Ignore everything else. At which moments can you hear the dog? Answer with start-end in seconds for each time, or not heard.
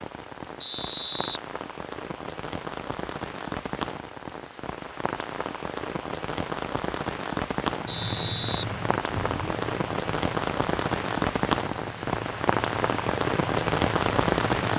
not heard.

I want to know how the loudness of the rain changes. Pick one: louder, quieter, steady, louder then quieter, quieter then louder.
louder.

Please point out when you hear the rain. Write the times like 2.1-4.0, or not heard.
0.0-14.7.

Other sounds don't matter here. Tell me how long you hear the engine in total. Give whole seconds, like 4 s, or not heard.
7 s.